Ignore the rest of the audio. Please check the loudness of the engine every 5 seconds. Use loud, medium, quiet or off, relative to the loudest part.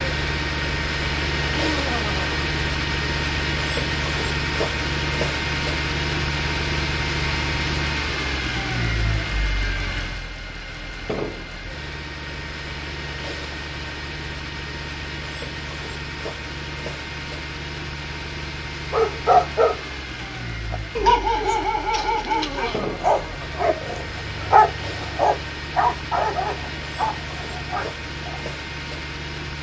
loud, loud, medium, medium, medium, medium.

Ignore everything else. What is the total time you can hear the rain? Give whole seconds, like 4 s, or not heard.
not heard.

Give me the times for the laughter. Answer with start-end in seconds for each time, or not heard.
1.4-2.4, 22.2-23.8.